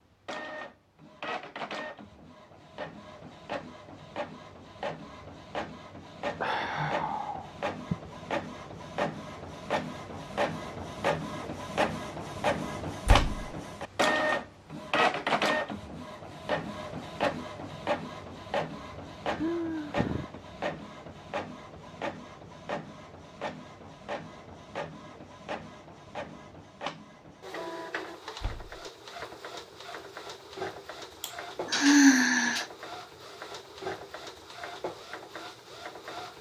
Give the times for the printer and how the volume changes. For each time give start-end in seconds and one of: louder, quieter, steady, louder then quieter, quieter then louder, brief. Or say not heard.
0.2-36.3 louder then quieter.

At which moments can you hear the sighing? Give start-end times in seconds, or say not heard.
6.3-8.0, 19.4-20.2, 31.2-32.6.